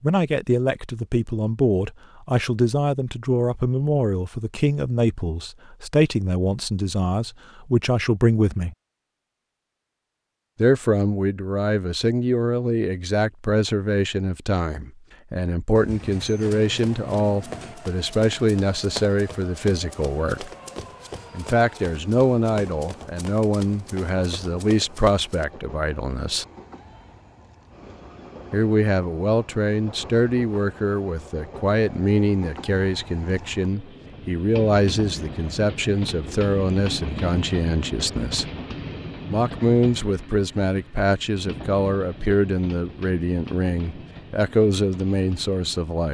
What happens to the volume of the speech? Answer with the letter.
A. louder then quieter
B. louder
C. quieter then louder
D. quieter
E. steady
E.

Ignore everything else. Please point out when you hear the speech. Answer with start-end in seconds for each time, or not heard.
0.0-8.8, 10.6-20.5, 21.3-26.4, 28.5-38.5, 39.3-46.0.